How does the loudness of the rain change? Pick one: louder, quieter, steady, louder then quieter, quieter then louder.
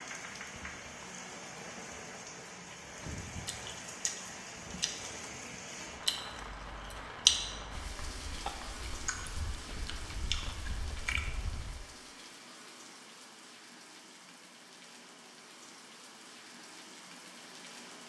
quieter.